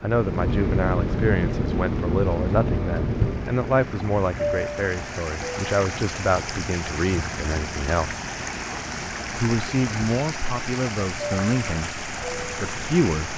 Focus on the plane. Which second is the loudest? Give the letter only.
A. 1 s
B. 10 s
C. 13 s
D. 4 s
A.